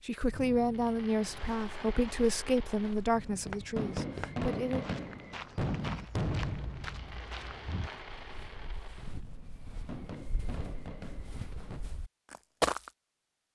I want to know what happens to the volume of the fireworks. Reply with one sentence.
The volume of the fireworks goes up, then down.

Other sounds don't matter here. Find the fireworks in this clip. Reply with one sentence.
The fireworks can be heard from 0.3 to 11.8 s.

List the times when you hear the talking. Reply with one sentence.
You can hear the talking from 0.1 to 4.8 s.